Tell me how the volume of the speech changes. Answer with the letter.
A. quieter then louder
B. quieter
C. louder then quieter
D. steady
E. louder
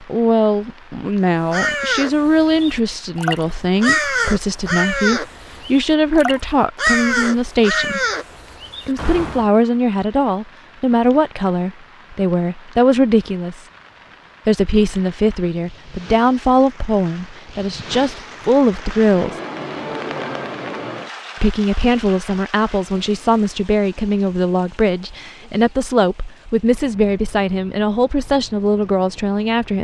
D.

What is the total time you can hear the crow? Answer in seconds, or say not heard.
8 s.